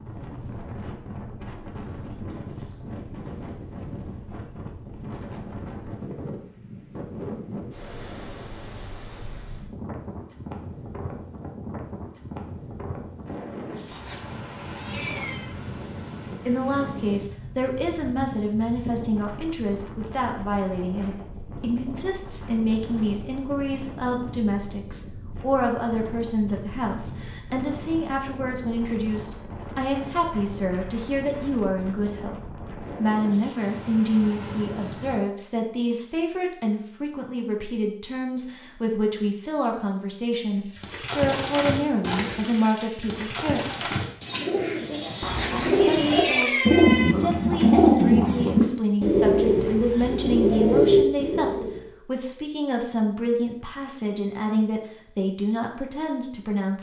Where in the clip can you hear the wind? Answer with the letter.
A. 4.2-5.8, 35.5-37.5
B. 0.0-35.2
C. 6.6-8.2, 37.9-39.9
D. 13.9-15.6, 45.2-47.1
B.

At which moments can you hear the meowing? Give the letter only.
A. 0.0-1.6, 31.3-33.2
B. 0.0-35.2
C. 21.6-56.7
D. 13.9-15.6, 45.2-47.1
D.